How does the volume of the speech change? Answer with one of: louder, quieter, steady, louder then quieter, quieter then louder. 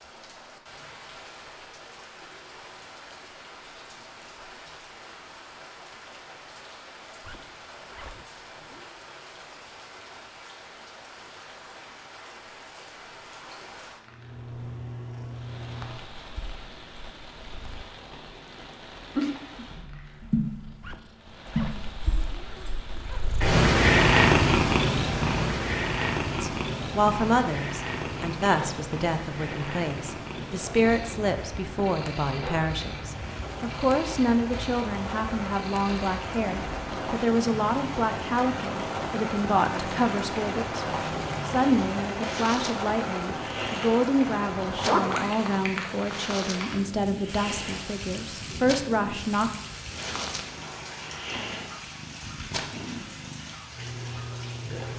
steady.